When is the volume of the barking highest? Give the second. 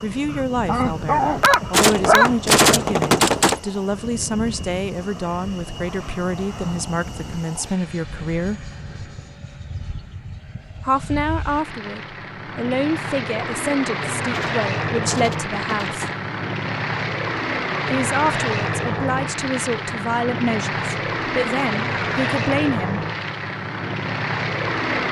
2 s.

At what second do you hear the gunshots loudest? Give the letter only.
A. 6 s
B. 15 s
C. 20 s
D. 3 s
D.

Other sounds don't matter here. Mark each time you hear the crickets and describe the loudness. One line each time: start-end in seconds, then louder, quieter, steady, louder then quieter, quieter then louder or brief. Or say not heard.
not heard.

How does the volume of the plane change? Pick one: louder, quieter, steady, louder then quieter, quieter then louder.
louder.